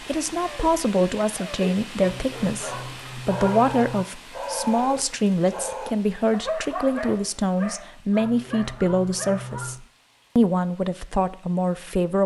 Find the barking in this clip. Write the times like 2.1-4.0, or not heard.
0.4-9.5.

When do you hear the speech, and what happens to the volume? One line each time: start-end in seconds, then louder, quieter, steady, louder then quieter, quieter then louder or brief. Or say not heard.
0.1-12.2 steady.